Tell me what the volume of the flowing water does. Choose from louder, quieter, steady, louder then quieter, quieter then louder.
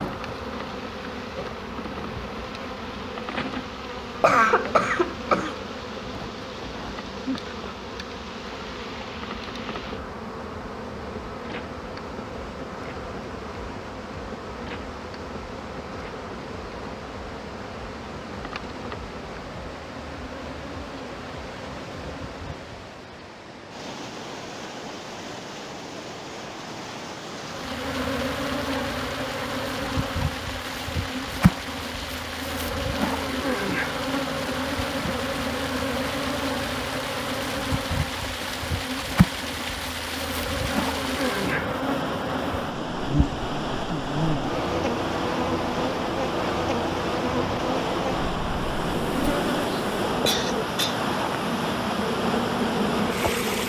louder.